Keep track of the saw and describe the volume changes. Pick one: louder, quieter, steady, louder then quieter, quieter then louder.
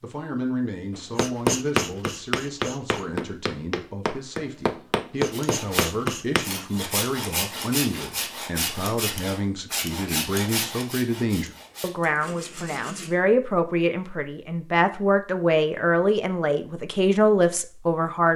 quieter.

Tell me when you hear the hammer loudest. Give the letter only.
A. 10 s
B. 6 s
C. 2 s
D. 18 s
C.